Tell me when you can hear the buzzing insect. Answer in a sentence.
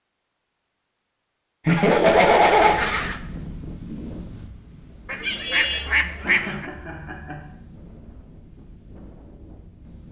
The buzzing insect can't be heard in this clip.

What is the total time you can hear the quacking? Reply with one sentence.
You can hear the quacking for 3 seconds altogether.